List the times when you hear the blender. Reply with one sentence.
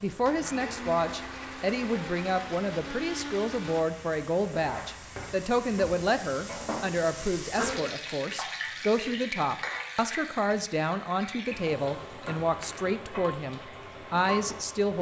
You can hear the blender from 0.1 to 3.9 s.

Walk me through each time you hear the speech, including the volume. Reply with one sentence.
The speech can be heard from 0.0 to 14.9 s, at a steady volume.